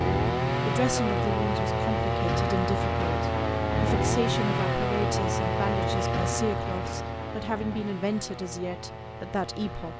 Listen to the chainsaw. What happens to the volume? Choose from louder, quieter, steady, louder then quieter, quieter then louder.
quieter.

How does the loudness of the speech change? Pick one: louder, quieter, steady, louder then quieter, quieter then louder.
steady.